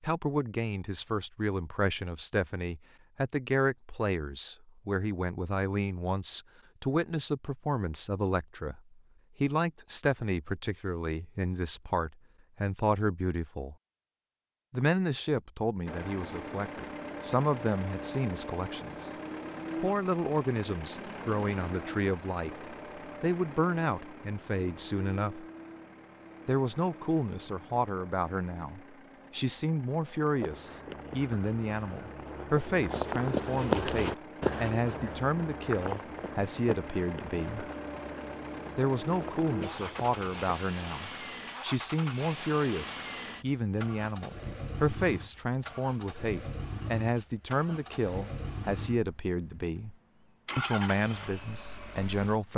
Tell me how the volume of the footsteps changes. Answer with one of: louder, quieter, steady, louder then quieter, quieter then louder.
louder then quieter.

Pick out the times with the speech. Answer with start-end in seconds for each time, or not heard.
0.0-13.8, 14.7-19.1, 19.8-25.4, 26.4-37.6, 38.8-50.0, 50.5-52.5.